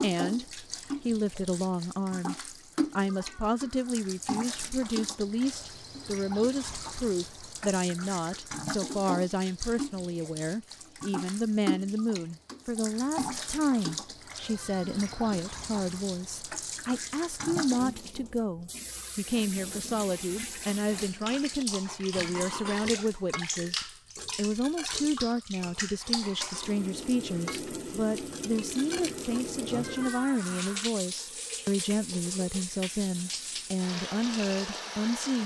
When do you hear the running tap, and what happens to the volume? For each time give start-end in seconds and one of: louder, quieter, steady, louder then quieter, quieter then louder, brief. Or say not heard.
0.0-35.4 steady.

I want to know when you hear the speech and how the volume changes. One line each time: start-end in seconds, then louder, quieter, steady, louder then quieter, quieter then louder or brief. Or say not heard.
0.0-35.4 steady.